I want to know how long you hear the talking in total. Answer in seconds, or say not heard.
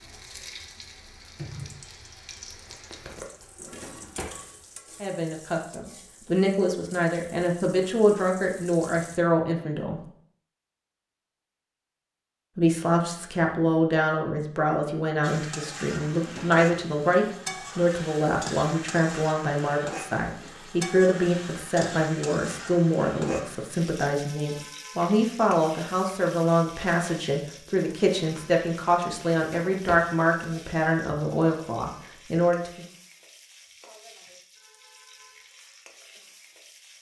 25 s.